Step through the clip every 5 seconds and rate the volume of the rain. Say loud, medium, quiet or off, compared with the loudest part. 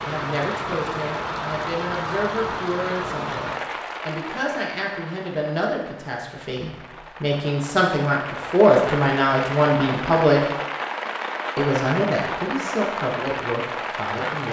loud, medium, loud.